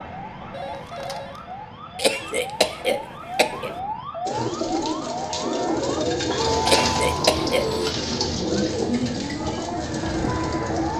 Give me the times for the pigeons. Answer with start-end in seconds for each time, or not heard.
4.2-10.9.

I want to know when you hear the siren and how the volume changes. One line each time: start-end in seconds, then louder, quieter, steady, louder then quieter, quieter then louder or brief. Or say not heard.
0.0-10.9 louder.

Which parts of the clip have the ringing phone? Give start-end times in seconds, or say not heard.
0.5-1.4, 6.4-8.0.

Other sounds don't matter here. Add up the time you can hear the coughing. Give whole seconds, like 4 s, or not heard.
3 s.